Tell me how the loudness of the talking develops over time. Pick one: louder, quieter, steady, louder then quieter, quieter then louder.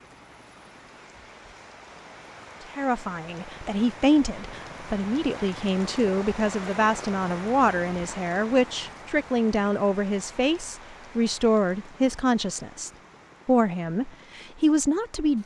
steady.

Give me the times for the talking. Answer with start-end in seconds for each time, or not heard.
2.8-15.4.